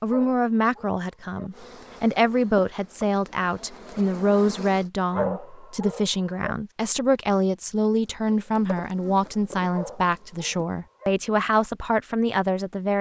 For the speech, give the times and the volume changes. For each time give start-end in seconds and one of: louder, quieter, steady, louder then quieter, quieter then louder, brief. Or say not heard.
0.0-12.9 steady.